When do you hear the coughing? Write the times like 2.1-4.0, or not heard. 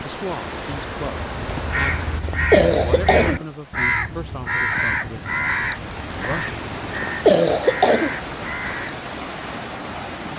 1.4-3.5, 6.2-8.2.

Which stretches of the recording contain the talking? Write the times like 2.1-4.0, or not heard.
0.0-6.5.